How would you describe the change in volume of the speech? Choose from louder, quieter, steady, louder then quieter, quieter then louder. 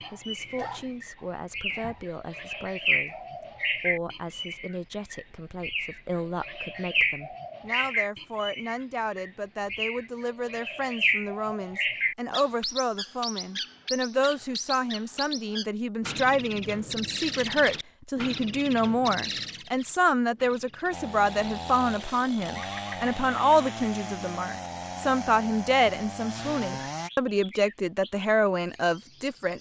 louder.